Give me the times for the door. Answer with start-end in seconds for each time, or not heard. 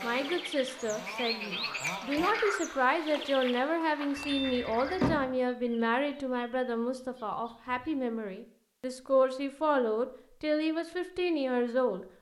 4.2-5.2.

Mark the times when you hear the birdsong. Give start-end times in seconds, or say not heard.
0.0-8.0.